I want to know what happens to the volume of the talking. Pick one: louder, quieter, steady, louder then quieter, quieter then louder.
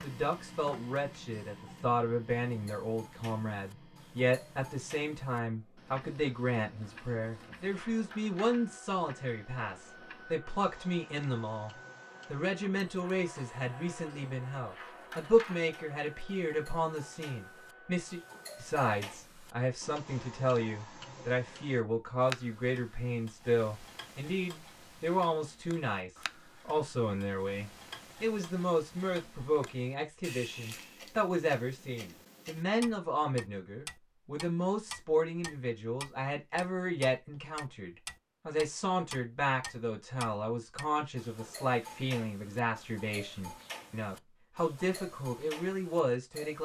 steady.